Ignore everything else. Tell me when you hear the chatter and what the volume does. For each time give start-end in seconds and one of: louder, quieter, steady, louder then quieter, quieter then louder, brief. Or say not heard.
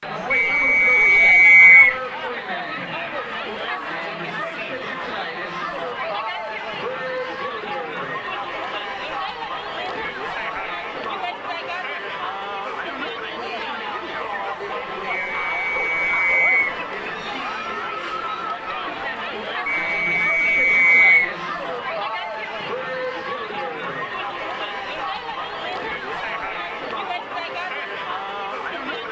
0.0-29.0 steady.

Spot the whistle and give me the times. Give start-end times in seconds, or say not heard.
0.3-1.9, 15.1-16.8, 19.6-21.4.